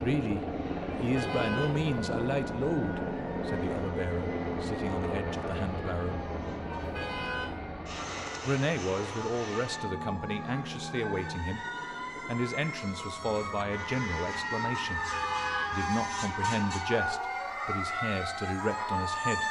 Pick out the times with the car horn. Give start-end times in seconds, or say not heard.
0.9-1.9, 6.8-7.5, 14.8-15.8.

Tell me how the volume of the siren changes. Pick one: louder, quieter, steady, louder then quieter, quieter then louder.
louder.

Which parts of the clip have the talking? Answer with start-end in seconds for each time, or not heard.
0.0-6.2, 8.4-11.7, 12.2-15.1, 15.7-19.4.